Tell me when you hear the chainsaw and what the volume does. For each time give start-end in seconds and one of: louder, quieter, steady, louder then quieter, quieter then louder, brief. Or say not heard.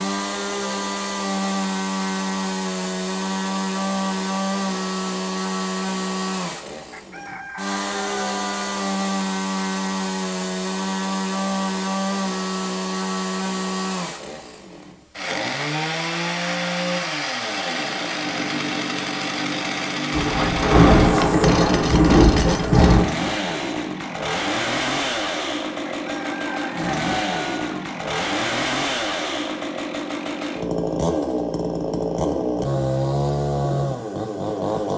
0.0-34.9 steady.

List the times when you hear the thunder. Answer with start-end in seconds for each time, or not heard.
20.1-23.1.